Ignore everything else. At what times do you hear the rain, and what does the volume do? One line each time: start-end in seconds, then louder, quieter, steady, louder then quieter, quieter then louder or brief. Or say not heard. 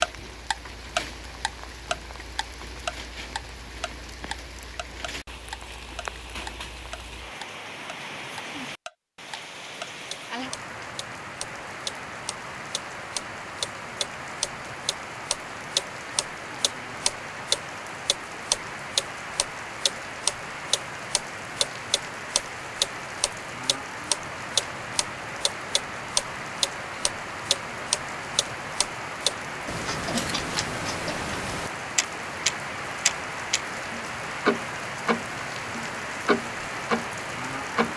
0.0-37.9 louder.